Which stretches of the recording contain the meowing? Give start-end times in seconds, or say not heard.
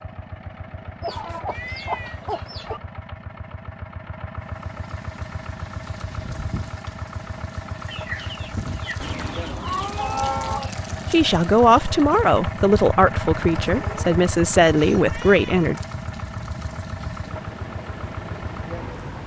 1.4-2.2, 9.0-10.6, 15.0-15.7.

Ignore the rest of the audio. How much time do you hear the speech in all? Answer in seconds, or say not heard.
5 s.